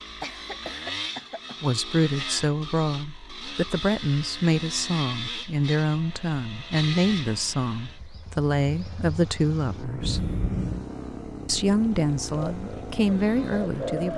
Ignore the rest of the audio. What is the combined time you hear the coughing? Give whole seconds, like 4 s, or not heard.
2 s.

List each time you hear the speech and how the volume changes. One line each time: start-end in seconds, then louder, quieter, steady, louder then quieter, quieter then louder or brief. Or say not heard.
1.6-10.3 steady
11.4-14.1 brief.